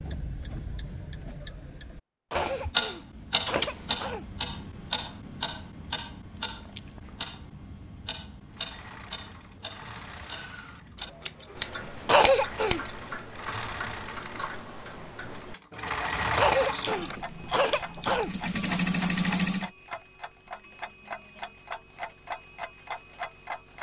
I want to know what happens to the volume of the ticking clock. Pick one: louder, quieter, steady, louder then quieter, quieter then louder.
quieter.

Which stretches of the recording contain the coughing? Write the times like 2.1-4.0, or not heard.
2.3-4.2, 12.1-12.8, 16.4-18.3.